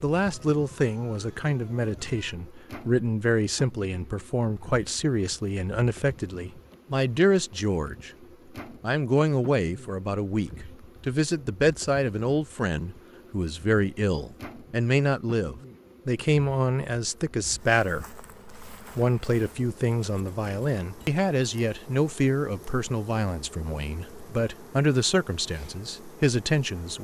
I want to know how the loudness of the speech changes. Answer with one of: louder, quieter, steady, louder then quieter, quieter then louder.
steady.